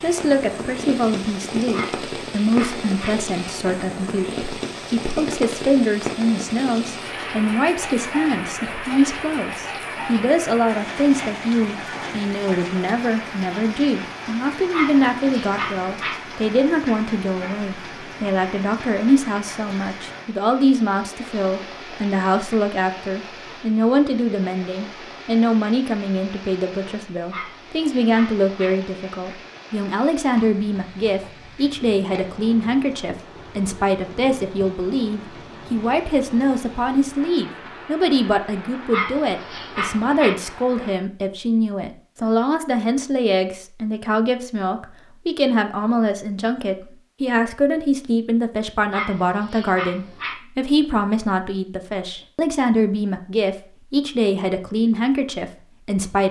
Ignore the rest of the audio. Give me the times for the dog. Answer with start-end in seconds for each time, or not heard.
1.7-3.1, 14.7-16.1, 27.3-28.8, 38.9-40.4, 48.9-50.4.